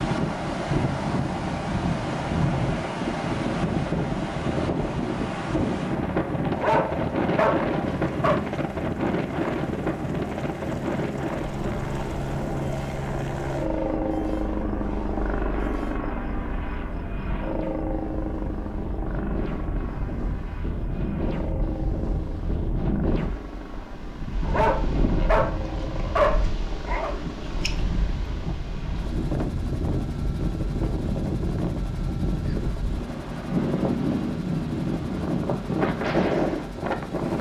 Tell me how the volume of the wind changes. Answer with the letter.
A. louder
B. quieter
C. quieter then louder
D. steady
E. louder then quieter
C.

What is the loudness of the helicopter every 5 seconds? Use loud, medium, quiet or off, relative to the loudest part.
medium, medium, loud, loud, medium, medium, medium, medium.